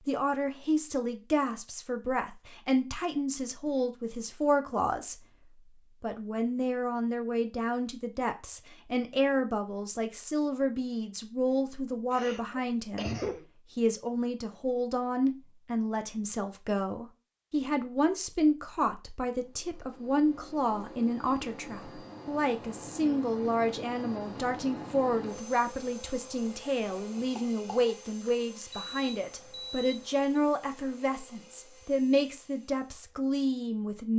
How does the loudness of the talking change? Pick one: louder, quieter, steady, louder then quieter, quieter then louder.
steady.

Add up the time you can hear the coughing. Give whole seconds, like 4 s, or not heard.
3 s.